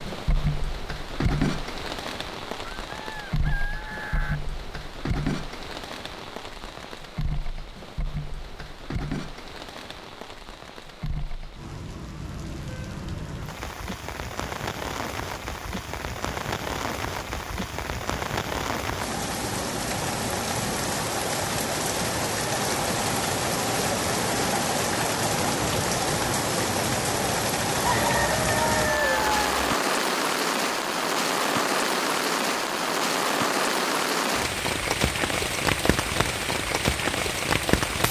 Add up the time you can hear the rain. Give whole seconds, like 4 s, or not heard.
38 s.